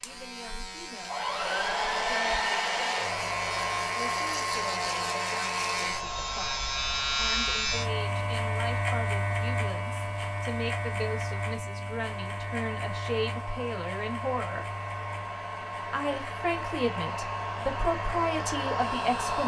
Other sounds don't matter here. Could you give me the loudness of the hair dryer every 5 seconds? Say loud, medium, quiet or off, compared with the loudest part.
loud, medium, medium, loud.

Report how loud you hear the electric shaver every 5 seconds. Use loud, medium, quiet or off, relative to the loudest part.
medium, loud, medium, quiet.